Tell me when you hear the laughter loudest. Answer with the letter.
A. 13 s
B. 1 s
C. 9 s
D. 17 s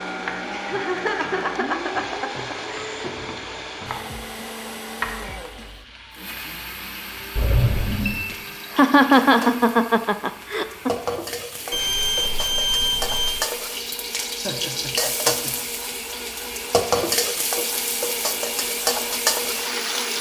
C.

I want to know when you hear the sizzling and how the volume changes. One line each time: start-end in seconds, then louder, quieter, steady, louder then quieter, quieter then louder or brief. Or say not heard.
0.1-20.1 louder.